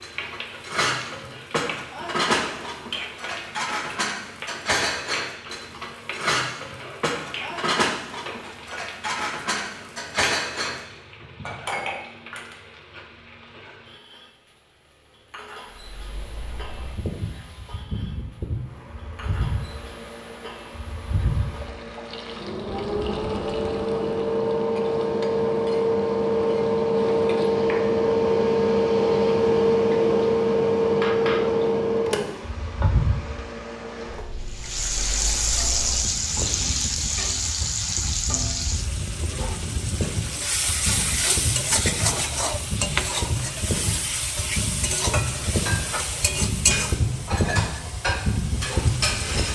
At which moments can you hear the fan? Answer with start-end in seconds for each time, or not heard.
15.7-49.5.